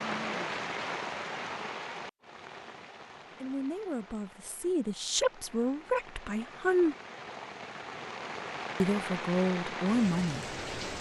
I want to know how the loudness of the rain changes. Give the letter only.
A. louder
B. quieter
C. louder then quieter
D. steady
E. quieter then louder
E.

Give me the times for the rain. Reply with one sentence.
The rain can be heard from 0.0 to 10.9 s.